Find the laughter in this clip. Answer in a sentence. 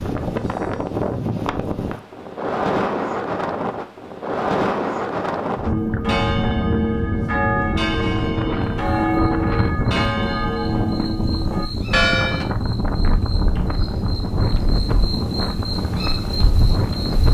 You can't hear the laughter here.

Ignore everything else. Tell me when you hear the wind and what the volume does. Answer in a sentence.
You can hear the wind from 0.0 to 17.2 s, at a steady volume.